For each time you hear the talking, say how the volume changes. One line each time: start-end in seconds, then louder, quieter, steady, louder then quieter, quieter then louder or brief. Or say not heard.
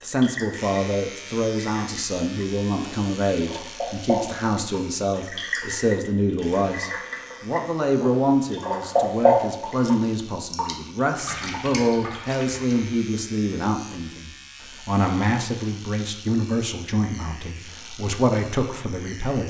0.0-19.4 steady.